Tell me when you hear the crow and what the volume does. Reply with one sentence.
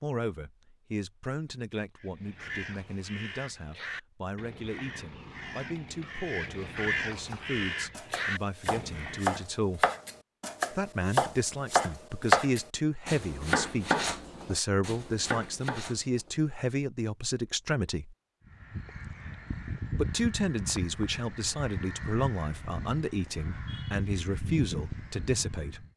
You can hear the crow from 1.9 to 9.4 s, getting louder; and from 18.4 to 25.9 s, at a steady volume.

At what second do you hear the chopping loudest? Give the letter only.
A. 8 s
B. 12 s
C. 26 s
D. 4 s
B.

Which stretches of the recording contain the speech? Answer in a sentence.
The speech can be heard from 0.0 to 9.8 s, from 10.7 to 18.1 s and from 19.9 to 25.9 s.